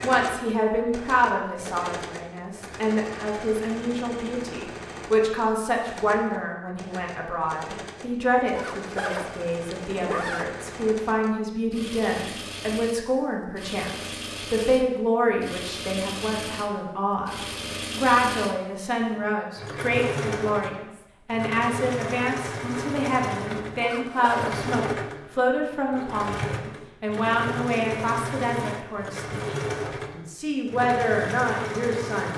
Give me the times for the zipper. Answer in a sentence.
You can hear the zipper from 8.6 to 10.4 s and from 23.8 to 24.6 s.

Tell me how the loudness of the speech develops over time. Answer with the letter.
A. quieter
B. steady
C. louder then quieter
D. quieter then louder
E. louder
B.